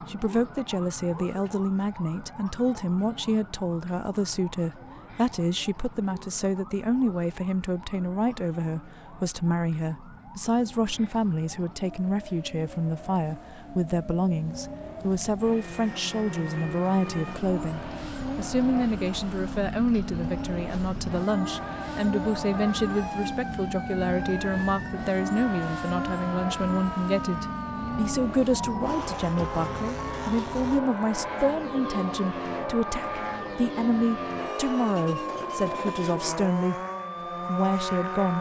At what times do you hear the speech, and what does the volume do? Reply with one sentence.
The speech can be heard from 0.0 to 36.8 s, at a steady volume; and briefly from 37.5 to 38.3 s.